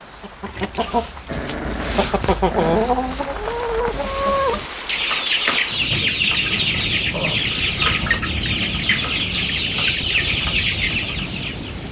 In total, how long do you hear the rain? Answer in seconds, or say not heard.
12 s.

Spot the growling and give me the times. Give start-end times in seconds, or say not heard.
1.2-3.0, 7.1-8.2.